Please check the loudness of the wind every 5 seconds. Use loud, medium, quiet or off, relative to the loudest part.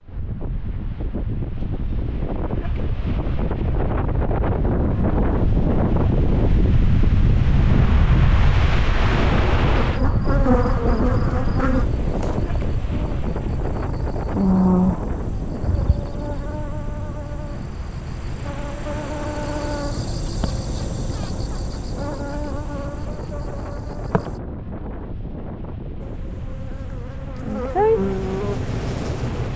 medium, loud, medium, quiet, quiet, quiet.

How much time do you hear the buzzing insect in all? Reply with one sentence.
The buzzing insect can be heard for 18 seconds in total.